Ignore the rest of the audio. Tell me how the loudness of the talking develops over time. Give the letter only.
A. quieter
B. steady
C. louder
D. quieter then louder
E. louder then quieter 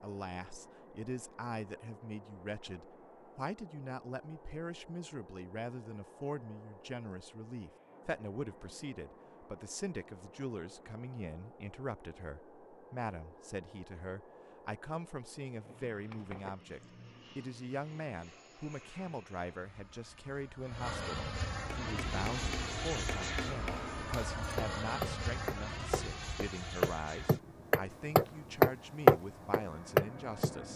B.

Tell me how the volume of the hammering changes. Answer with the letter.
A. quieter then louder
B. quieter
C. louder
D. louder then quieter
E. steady
C.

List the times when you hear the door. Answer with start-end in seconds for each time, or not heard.
15.6-16.6.